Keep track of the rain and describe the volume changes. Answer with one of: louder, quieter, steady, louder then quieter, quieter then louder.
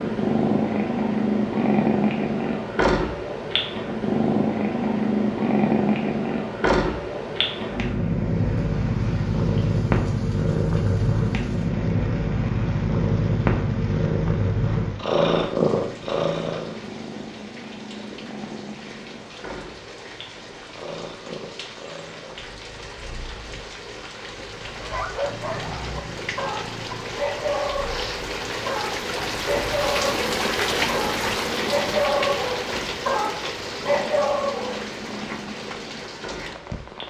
louder.